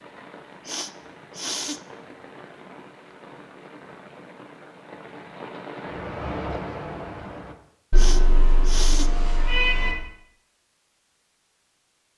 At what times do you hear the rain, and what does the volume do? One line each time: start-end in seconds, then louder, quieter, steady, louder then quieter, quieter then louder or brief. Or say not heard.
0.0-7.5 louder.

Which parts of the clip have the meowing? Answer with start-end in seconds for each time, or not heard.
7.9-9.9.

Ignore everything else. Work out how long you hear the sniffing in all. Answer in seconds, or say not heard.
2 s.